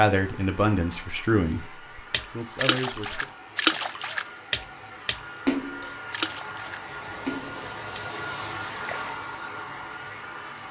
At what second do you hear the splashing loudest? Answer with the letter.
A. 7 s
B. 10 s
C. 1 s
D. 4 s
D.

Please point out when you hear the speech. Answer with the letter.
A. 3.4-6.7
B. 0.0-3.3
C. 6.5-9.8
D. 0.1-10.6
B.